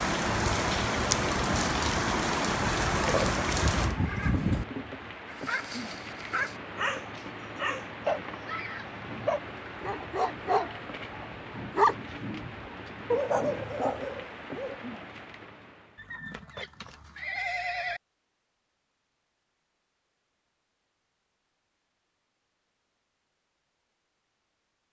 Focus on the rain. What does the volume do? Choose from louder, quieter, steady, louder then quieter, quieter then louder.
quieter.